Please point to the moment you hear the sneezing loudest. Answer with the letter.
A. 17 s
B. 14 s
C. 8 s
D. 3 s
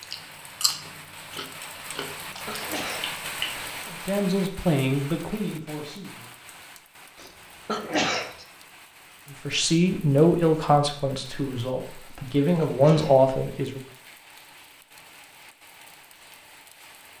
C.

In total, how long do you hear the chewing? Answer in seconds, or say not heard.
4 s.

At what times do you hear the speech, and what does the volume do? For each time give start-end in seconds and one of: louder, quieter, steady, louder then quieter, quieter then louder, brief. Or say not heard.
3.9-6.3 brief
9.3-13.8 quieter then louder.